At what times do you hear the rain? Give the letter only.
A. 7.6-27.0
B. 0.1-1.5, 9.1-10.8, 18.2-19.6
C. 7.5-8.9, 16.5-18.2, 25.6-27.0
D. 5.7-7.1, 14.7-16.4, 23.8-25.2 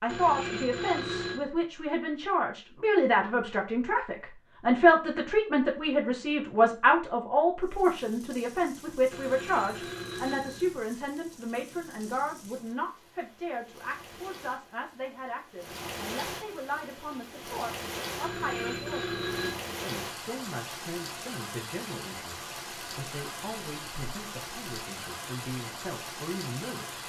A.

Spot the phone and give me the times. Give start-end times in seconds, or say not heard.
0.1-1.5, 9.1-10.8, 18.2-19.6.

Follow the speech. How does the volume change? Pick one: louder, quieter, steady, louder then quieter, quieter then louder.
quieter.